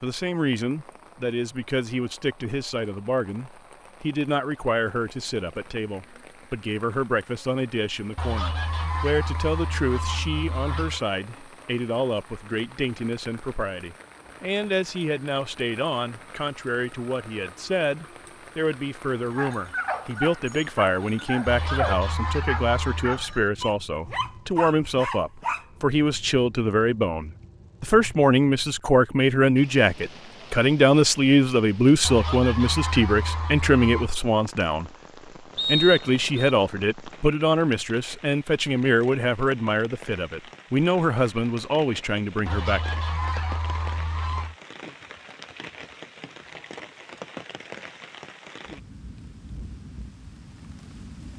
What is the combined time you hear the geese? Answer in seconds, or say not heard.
9 s.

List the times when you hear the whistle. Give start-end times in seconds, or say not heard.
35.5-36.5.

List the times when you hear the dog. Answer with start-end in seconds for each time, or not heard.
19.3-25.6.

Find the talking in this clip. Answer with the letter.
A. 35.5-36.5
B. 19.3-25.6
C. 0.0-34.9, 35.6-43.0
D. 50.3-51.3
C.